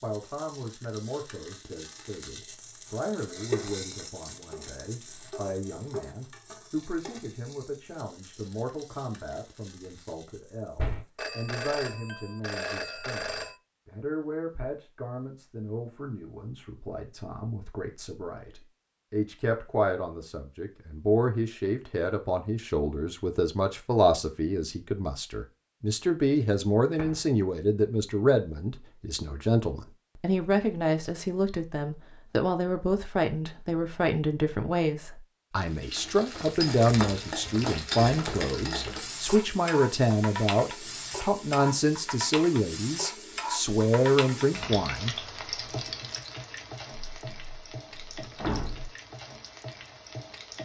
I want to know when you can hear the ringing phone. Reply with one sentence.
The ringing phone can be heard from 11.2 to 13.6 s.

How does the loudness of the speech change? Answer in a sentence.
The loudness of the speech goes up.